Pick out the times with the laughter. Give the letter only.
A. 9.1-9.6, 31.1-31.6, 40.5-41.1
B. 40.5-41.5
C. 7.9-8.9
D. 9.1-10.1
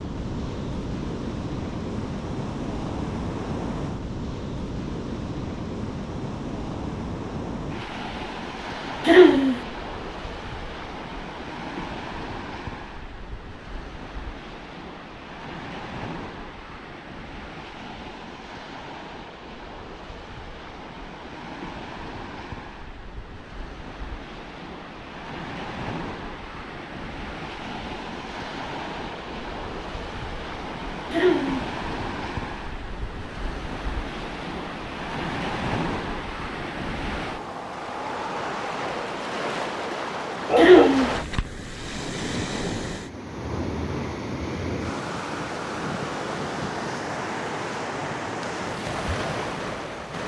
A.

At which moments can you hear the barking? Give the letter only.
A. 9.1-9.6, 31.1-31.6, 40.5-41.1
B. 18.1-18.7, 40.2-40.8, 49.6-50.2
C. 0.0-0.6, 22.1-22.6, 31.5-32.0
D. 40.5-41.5
D.